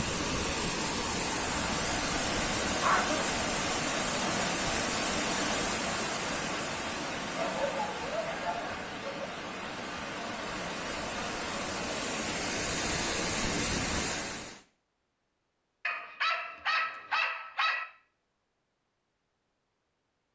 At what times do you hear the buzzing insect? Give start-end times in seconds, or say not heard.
not heard.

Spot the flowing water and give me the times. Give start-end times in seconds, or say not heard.
0.0-14.6.